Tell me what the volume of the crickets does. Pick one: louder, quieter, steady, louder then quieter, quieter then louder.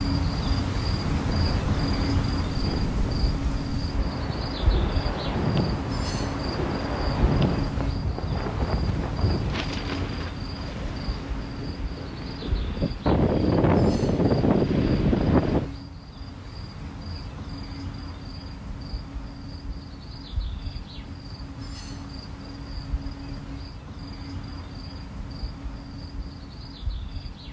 quieter.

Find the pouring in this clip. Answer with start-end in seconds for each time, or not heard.
not heard.